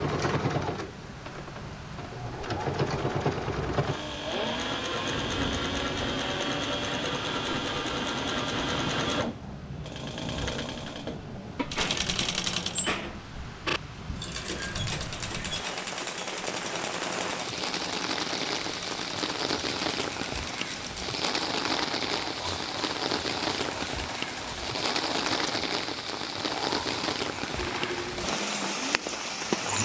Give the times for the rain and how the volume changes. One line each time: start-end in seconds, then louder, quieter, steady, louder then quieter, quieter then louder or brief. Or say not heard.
0.0-29.7 louder.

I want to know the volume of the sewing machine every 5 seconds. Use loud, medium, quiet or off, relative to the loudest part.
loud, loud, loud, medium, medium, medium.